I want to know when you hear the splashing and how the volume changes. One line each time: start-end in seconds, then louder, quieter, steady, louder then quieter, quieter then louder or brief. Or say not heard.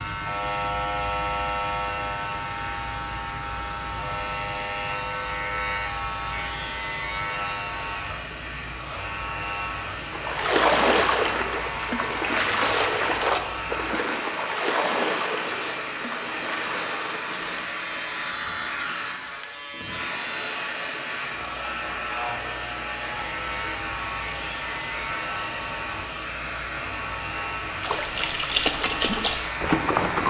9.9-17.0 quieter
27.7-30.2 brief.